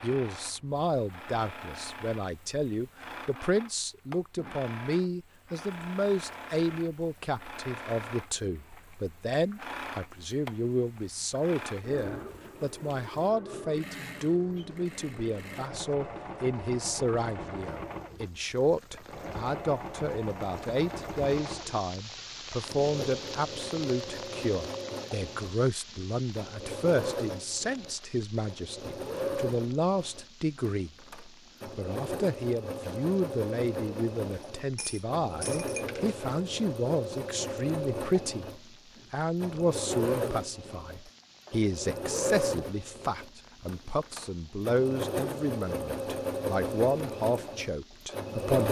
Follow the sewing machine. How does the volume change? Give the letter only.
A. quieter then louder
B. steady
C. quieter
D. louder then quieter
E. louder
E.